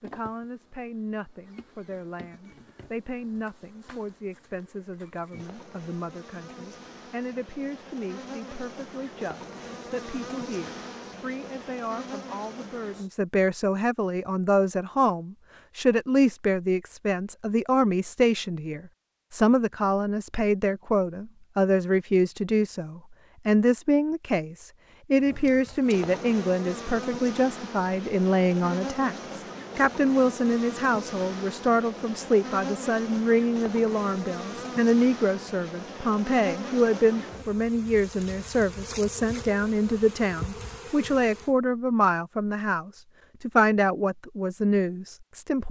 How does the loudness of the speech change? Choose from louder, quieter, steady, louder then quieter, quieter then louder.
louder.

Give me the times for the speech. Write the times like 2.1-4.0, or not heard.
0.0-45.6.